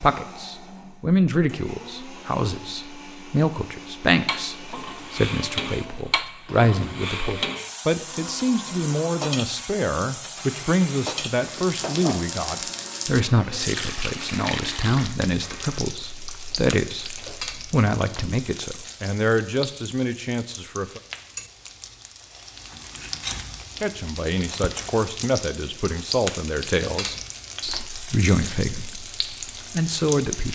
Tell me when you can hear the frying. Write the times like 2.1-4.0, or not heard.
4.2-30.5.